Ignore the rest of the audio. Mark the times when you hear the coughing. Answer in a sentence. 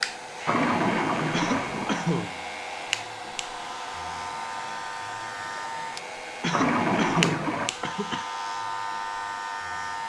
You can hear the coughing from 1.3 to 2.4 s and from 6.4 to 8.2 s.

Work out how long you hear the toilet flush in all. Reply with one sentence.
You can hear the toilet flush for 3 seconds altogether.